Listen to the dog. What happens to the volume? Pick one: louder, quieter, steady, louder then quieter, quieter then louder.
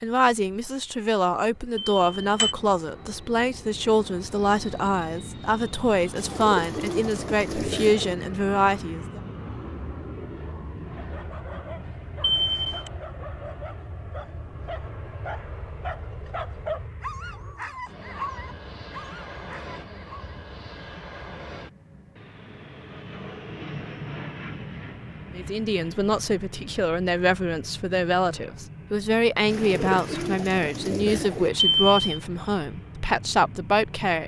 louder.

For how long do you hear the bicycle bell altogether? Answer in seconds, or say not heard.
2 s.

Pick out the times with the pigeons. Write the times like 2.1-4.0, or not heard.
6.2-8.2, 29.5-31.5.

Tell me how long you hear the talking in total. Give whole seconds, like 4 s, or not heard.
18 s.